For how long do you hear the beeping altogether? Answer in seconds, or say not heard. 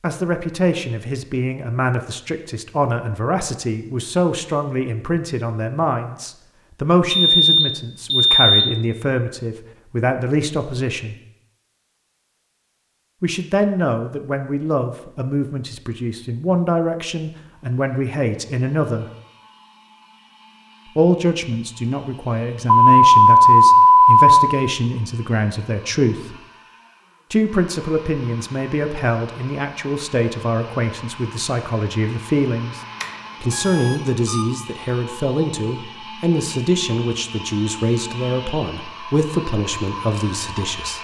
5 s.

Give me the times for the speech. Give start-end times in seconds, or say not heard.
0.0-11.2, 13.2-19.1, 20.9-26.4, 27.3-32.8, 33.4-41.0.